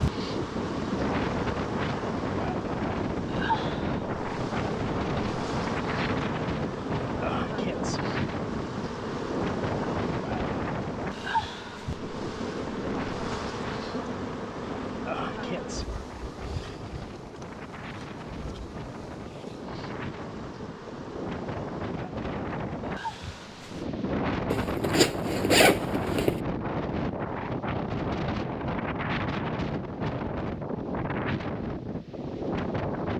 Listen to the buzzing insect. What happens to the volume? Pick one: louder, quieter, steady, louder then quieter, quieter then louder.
quieter.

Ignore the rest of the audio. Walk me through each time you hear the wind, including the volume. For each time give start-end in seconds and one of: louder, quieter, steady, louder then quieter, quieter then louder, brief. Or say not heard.
0.0-33.1 quieter then louder.